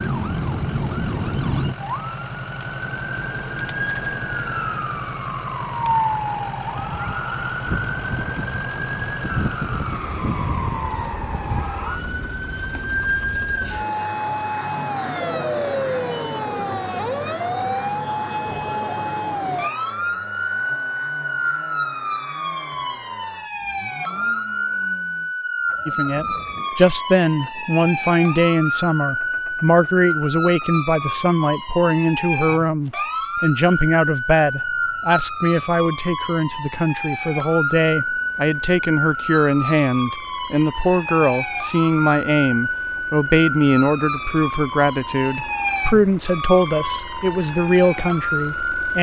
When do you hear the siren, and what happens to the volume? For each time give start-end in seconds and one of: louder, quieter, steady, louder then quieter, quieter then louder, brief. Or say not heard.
0.0-48.9 steady.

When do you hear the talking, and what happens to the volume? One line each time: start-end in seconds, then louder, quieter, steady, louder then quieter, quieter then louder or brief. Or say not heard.
25.9-48.9 steady.